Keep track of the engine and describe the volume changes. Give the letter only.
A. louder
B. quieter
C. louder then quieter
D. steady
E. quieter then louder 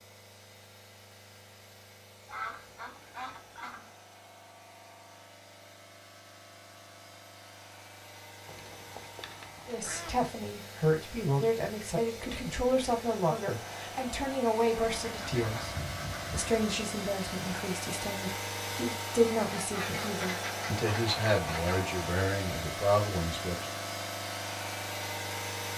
A.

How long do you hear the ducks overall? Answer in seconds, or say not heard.
8 s.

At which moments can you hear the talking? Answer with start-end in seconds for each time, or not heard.
9.7-15.7, 16.3-23.7.